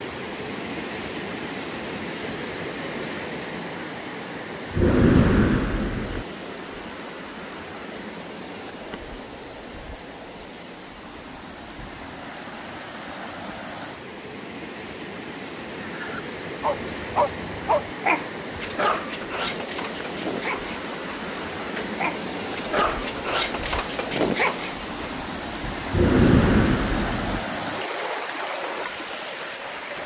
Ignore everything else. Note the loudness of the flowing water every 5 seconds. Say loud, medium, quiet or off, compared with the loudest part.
loud, medium, medium, loud, loud, loud.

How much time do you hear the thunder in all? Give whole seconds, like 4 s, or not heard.
3 s.